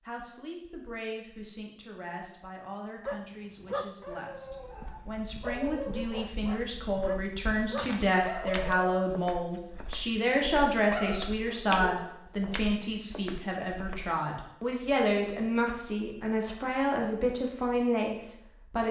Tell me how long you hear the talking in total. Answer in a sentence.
You can hear the talking for 19 seconds altogether.